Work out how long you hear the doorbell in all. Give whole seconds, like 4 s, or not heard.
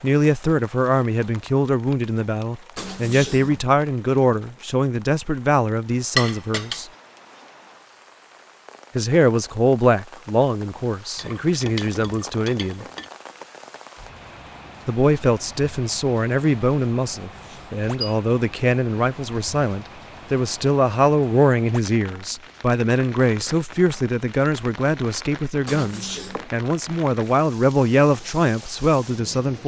3 s.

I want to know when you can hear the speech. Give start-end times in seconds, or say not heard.
0.0-6.9, 8.9-12.8, 14.8-29.6.